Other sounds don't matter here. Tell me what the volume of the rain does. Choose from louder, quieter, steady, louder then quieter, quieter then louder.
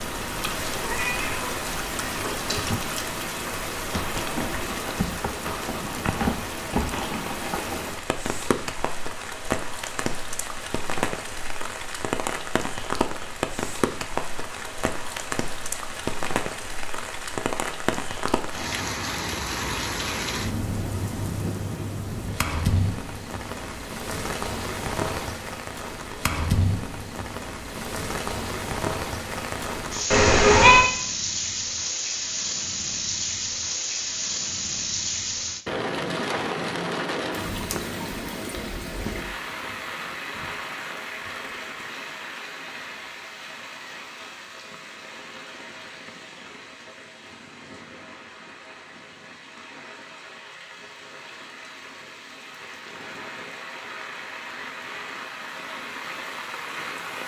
quieter.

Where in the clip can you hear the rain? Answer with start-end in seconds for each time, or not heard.
0.0-57.2.